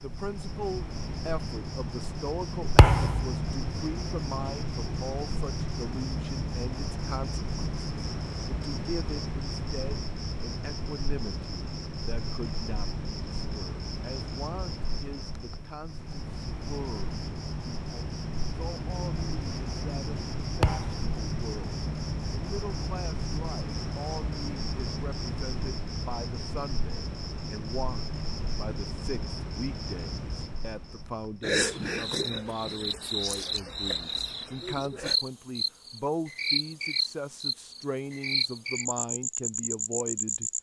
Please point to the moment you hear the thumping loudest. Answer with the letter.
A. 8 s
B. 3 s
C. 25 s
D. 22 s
B.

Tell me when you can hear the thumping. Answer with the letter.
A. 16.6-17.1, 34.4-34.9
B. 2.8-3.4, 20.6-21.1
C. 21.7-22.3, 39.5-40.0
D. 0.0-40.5
B.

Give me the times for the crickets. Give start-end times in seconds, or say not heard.
0.0-40.5.